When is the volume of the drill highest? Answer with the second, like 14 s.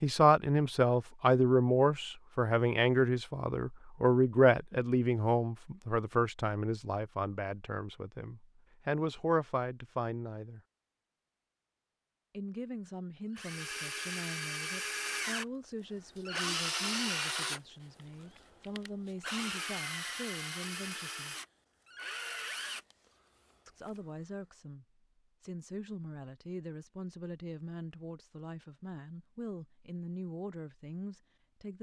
17 s.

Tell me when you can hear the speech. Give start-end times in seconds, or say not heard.
0.0-10.6, 12.3-21.4, 23.6-31.7.